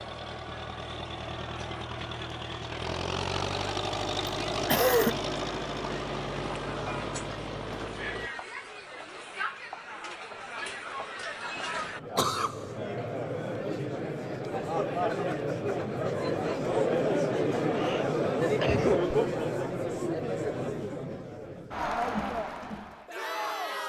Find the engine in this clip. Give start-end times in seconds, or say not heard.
0.0-8.3.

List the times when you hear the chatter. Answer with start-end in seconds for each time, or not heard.
0.0-23.8.